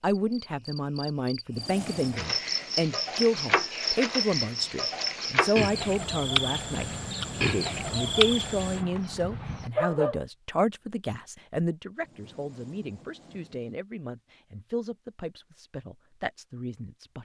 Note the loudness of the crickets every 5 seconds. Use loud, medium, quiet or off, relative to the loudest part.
loud, loud, off, off.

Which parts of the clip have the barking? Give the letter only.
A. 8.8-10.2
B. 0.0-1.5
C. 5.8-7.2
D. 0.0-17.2
A.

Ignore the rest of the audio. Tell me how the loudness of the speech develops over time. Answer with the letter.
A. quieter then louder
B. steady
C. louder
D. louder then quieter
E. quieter
E.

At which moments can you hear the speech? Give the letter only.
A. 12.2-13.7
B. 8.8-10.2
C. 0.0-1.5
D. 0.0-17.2
D.